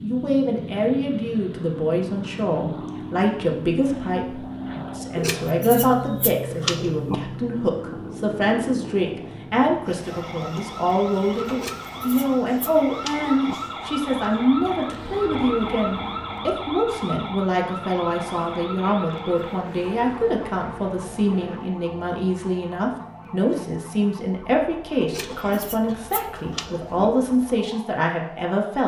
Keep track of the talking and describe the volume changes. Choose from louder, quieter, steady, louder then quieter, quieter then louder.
steady.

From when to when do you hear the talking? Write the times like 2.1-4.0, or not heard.
0.0-28.8.